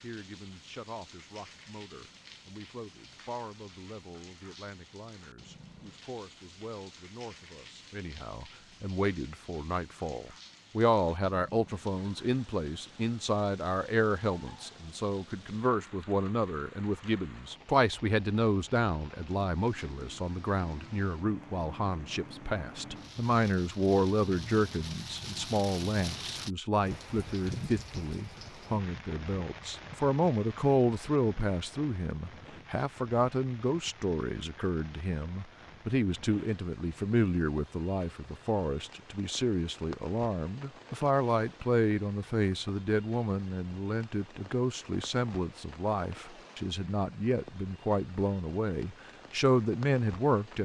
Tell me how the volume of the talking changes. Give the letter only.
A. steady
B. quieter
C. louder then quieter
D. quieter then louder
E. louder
E.